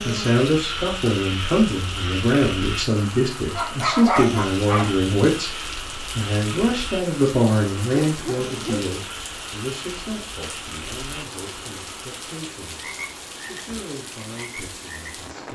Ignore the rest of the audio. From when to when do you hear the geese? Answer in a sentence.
You can't hear the geese here.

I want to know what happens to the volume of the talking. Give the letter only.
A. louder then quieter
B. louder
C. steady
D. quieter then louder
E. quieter
E.